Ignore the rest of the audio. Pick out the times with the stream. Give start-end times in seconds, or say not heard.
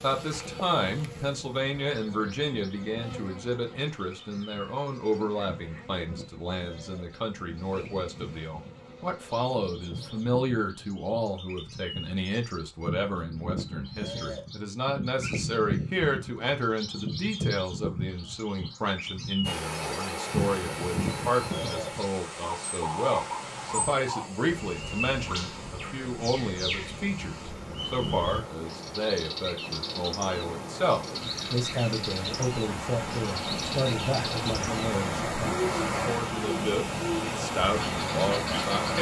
19.4-38.9.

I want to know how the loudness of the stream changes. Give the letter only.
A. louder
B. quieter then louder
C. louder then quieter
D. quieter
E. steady
B.